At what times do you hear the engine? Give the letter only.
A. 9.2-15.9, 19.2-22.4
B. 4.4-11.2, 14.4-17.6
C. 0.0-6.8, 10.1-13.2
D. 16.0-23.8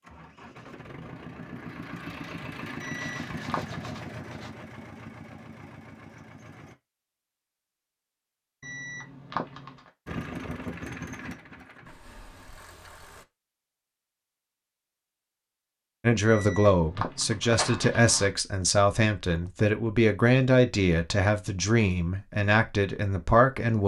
C.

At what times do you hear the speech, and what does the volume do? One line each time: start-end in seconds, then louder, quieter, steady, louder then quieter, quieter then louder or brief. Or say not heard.
16.0-23.8 steady.